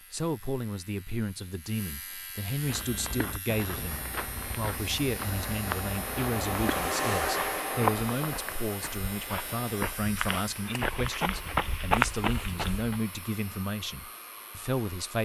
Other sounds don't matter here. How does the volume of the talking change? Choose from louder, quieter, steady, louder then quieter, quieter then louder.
steady.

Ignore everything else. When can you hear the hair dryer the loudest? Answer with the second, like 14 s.
7 s.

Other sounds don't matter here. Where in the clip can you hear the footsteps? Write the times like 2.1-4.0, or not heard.
2.6-13.0.